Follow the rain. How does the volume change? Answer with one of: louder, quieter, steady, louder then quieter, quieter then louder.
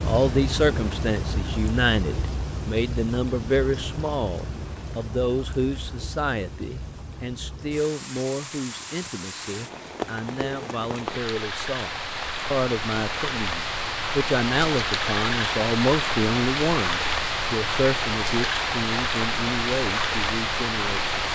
quieter then louder.